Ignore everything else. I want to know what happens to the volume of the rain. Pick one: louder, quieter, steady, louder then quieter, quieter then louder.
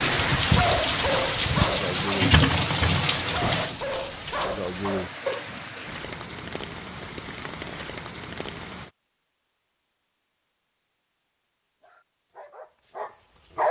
quieter.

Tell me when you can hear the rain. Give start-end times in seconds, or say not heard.
0.0-8.9.